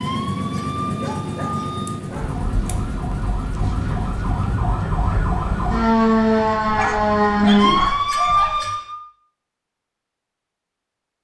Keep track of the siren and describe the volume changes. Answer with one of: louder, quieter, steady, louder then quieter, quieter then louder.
louder.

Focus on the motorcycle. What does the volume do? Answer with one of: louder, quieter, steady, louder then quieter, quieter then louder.
quieter.